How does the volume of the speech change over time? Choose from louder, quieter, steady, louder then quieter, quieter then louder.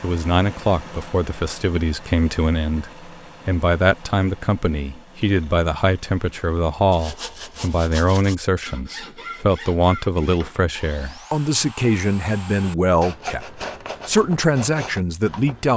steady.